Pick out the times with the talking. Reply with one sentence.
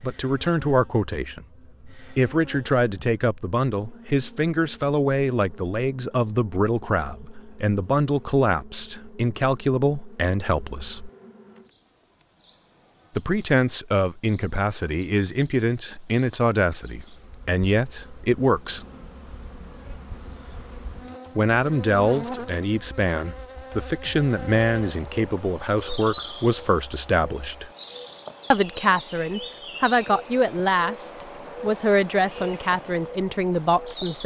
The talking can be heard from 0.0 to 11.1 s, from 13.2 to 18.9 s, from 21.4 to 27.7 s and from 28.5 to 34.2 s.